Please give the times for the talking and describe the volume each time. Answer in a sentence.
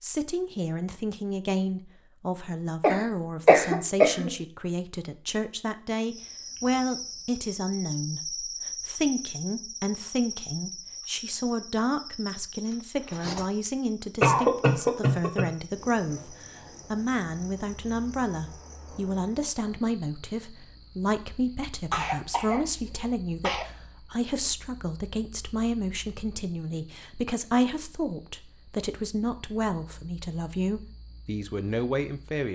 The talking can be heard from 0.0 to 32.4 s, at a steady volume.